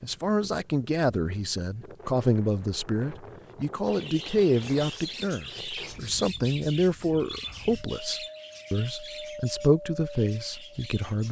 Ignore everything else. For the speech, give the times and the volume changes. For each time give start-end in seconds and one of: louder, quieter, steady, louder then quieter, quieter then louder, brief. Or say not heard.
0.0-11.2 steady.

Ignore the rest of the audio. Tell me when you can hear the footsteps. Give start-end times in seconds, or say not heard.
not heard.